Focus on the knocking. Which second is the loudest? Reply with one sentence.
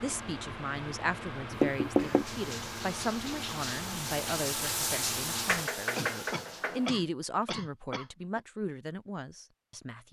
The volume of the knocking peaks at 2 seconds.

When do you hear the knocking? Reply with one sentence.
The knocking can be heard from 1.6 to 2.2 s and from 5.5 to 6.9 s.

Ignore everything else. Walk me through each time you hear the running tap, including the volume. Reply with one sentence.
The running tap can be heard from 1.9 to 6.8 s, getting louder then quieter.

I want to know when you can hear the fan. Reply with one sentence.
The fan can be heard from 0.0 to 5.7 s.